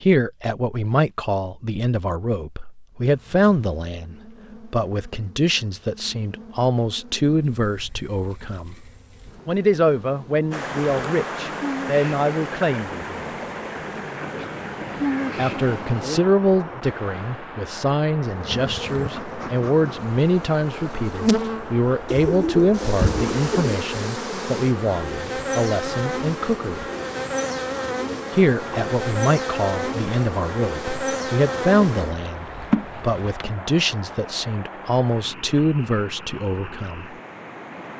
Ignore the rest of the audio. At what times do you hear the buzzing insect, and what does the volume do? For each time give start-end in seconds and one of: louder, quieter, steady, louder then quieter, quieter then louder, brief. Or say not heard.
3.0-16.2 louder
18.2-33.5 steady.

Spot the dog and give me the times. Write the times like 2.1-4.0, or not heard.
not heard.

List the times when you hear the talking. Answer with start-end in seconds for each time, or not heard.
0.0-8.8, 9.4-13.1, 15.3-26.8, 28.3-37.0.